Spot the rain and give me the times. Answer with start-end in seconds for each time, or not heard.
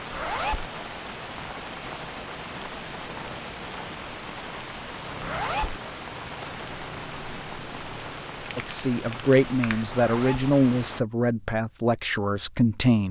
0.0-11.1.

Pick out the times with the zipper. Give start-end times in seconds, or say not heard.
0.1-0.7, 5.2-5.8, 9.9-10.5.